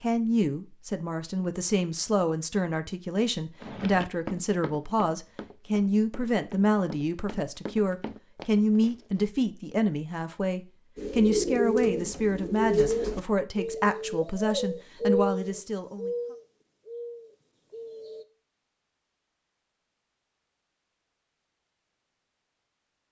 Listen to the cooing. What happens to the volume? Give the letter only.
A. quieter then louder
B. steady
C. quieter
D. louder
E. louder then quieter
C.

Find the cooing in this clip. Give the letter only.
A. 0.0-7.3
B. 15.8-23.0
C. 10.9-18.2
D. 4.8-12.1
C.